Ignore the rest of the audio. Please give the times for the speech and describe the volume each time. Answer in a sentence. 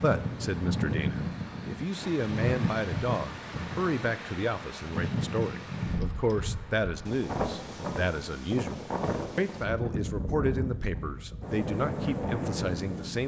The speech can be heard from 0.0 to 13.2 s, at a steady volume.